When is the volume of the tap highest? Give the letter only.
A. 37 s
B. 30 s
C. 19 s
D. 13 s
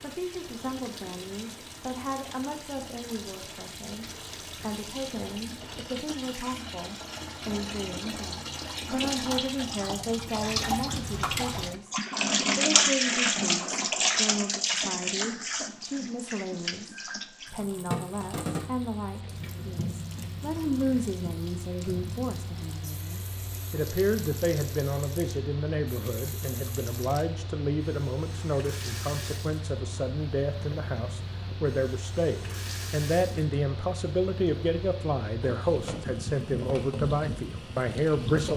D.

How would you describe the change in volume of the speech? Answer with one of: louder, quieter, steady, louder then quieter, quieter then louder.
louder.